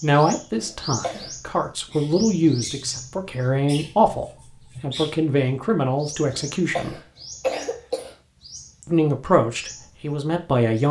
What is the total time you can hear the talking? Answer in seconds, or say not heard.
9 s.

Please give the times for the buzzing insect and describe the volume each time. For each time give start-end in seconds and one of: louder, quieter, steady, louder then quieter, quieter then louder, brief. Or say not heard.
not heard.